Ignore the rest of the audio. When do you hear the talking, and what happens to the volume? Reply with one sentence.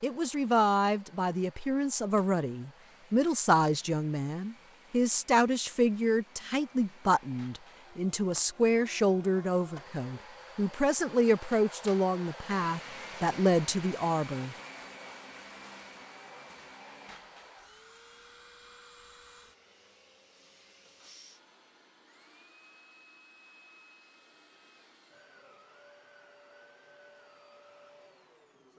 The talking can be heard from 0.0 to 14.6 s, at a steady volume.